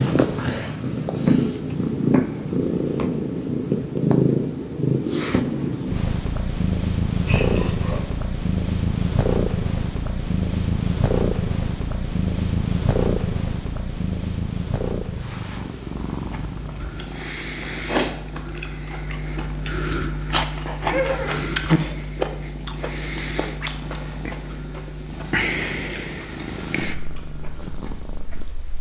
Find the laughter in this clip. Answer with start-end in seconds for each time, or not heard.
7.2-8.0, 20.9-21.4.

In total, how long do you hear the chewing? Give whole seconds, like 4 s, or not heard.
12 s.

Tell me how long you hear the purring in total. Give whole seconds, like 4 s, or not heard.
29 s.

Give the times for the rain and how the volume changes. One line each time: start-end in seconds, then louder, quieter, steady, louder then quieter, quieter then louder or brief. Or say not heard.
not heard.